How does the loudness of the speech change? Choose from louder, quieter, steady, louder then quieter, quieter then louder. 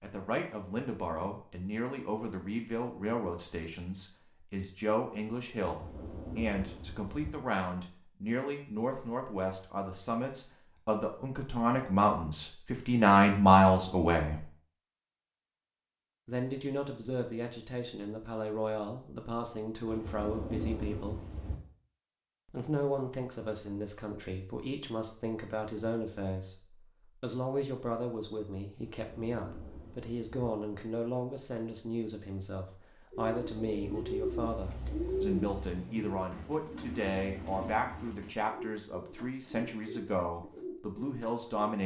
louder then quieter.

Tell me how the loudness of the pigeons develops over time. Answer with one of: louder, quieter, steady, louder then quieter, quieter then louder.
quieter.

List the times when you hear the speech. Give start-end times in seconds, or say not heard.
0.0-14.4, 16.2-21.2, 22.5-41.8.